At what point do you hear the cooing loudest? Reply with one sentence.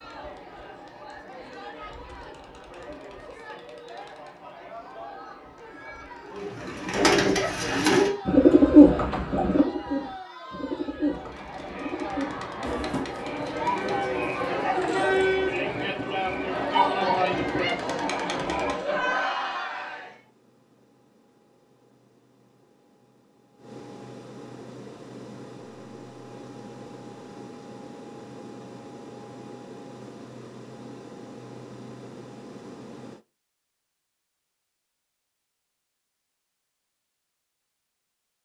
The volume of the cooing peaks at 9 seconds.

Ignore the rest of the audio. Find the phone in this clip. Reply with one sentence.
You can't hear the phone here.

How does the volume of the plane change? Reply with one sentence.
The volume of the plane goes up.